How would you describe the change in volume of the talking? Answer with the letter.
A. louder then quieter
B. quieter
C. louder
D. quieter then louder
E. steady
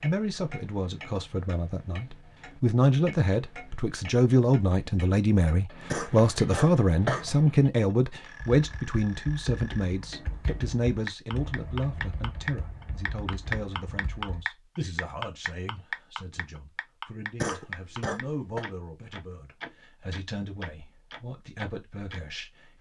B.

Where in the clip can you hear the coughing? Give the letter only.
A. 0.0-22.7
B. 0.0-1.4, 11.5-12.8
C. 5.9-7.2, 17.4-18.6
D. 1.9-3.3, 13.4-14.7
C.